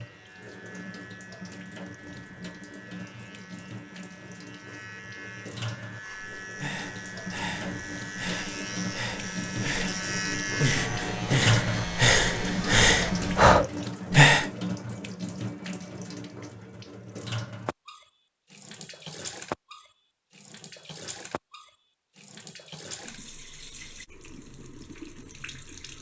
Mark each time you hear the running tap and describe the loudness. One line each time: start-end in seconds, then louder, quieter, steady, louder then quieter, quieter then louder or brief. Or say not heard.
0.0-25.9 louder then quieter.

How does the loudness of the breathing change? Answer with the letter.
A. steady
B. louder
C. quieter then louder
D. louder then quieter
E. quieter
B.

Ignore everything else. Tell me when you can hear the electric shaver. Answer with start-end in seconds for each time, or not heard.
0.0-13.5.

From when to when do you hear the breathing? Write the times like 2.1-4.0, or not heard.
6.0-14.5.